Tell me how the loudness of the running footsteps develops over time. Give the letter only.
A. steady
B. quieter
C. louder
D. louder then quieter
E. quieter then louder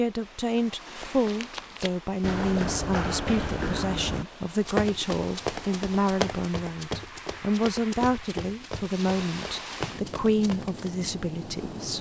B.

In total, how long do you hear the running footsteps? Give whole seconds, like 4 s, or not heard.
10 s.